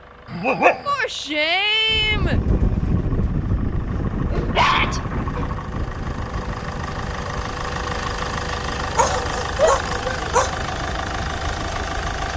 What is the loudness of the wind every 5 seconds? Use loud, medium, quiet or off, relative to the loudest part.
loud, medium, quiet.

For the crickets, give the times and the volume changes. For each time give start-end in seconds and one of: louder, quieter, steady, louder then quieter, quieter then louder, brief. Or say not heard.
not heard.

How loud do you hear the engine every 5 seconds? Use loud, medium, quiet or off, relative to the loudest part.
quiet, loud, loud.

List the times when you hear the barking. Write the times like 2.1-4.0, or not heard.
0.3-0.8, 4.3-5.5, 8.8-10.6.